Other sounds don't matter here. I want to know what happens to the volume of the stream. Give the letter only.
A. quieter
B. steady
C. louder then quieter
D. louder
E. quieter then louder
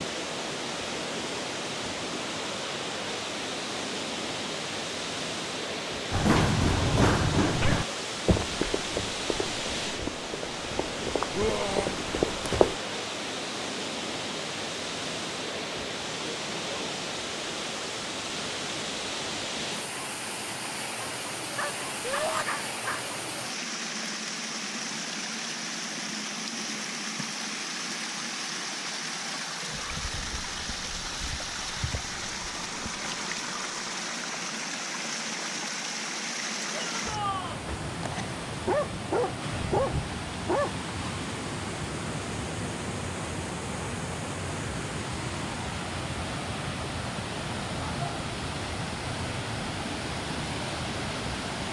B.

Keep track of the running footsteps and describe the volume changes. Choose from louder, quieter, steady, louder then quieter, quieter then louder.
quieter then louder.